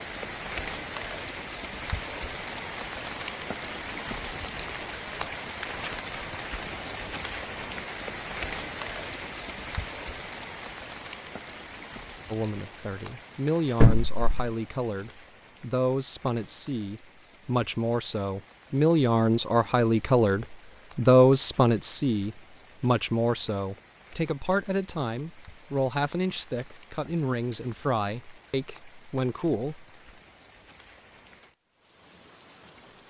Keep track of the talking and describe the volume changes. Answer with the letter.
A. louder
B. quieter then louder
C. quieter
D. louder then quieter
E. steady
D.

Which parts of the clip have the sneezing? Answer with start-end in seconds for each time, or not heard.
13.8-14.5.